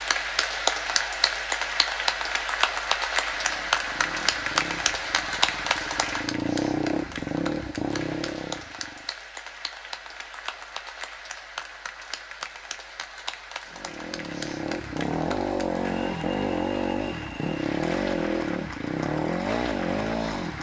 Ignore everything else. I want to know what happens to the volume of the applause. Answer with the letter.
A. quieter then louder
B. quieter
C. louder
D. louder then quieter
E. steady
B.